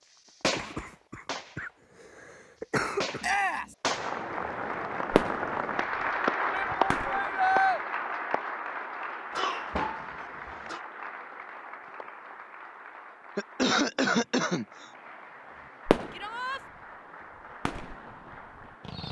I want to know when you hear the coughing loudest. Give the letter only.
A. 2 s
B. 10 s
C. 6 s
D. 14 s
D.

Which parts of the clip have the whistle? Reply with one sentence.
You can't hear the whistle here.